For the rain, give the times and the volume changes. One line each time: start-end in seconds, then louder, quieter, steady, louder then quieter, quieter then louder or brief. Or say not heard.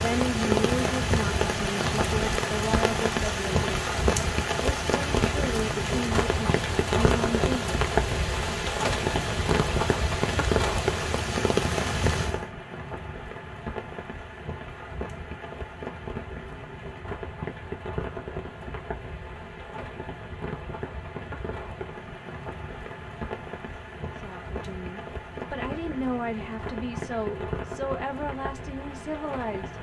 0.0-29.7 quieter.